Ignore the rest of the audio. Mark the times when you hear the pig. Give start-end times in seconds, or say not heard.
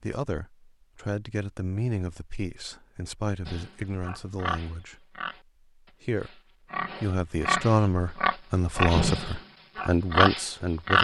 3.5-10.9.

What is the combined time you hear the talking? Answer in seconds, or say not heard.
9 s.